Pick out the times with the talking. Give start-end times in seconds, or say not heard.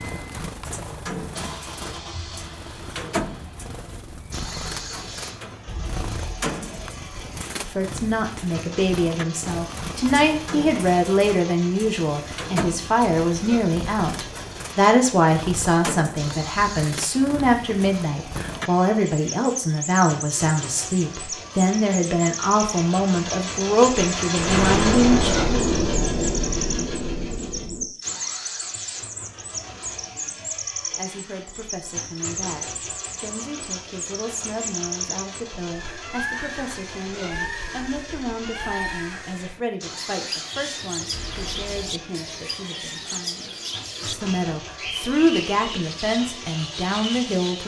7.7-25.3, 30.9-47.6.